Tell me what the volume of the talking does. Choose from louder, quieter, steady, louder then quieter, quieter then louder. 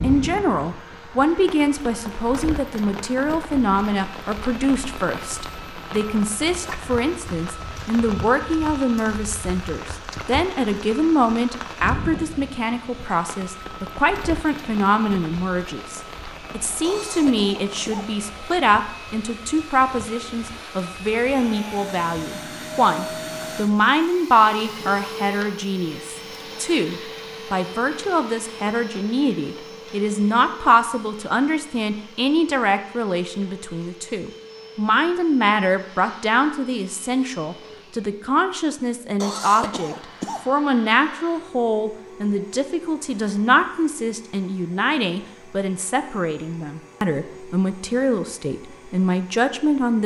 steady.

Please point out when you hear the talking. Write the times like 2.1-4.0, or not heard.
0.0-50.0.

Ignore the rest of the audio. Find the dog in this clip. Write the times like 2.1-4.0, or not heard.
not heard.